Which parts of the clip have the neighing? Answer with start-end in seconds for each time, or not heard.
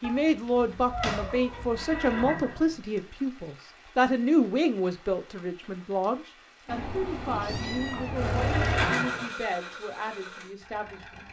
1.3-3.0, 7.9-9.3.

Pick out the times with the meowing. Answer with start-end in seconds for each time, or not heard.
0.0-2.4, 6.7-8.5.